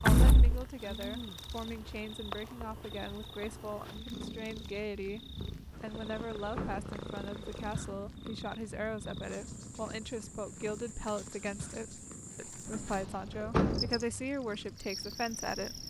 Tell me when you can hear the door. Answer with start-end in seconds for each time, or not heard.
0.1-0.7, 5.7-7.0, 12.7-14.1.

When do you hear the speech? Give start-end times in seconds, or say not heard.
0.0-15.8.